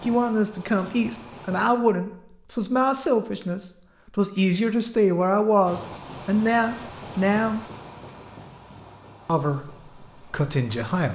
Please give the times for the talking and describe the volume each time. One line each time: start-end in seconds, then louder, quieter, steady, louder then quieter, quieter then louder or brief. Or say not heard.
0.0-7.6 steady
9.2-11.1 brief.